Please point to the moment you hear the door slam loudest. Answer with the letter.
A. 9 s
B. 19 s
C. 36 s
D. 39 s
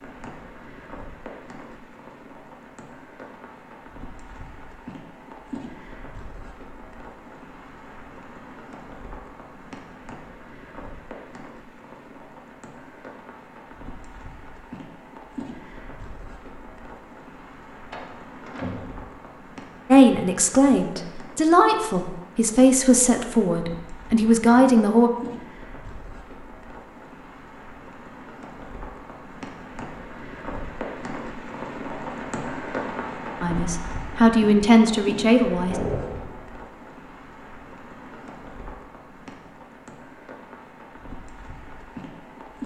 C.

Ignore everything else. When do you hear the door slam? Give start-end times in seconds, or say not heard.
17.9-19.1, 35.6-36.5.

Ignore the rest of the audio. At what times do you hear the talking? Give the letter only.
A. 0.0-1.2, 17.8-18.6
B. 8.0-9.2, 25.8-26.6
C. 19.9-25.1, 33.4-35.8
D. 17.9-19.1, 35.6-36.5
C.